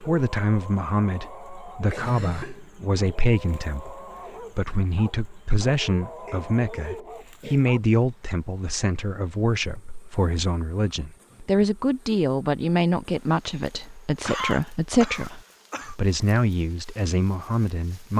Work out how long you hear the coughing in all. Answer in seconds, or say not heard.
4 s.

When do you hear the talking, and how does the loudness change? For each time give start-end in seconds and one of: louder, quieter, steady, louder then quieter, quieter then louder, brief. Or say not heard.
0.0-18.1 steady.